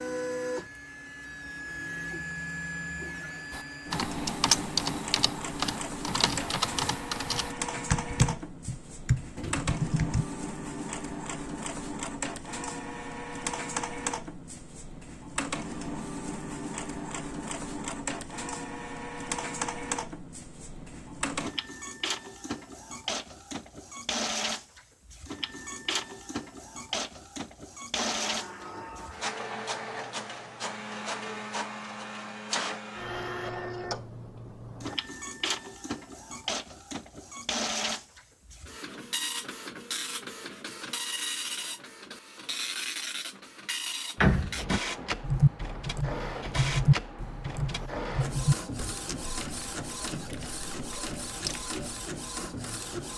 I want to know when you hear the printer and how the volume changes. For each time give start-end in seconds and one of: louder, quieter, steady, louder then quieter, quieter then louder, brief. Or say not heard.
0.0-53.1 steady.